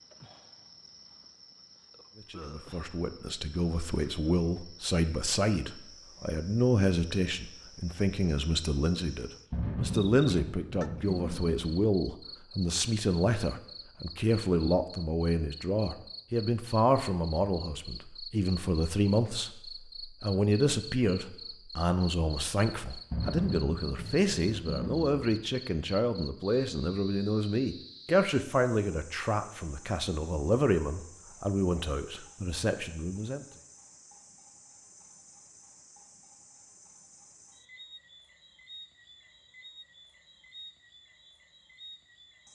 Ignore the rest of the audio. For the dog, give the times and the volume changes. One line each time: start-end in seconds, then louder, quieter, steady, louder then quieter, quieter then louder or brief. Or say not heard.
not heard.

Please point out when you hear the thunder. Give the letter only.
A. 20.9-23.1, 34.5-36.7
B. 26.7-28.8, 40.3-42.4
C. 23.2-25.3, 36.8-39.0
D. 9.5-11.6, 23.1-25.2
D.